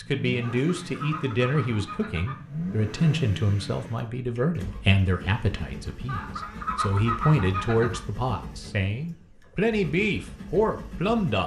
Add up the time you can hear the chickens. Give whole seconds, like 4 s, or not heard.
4 s.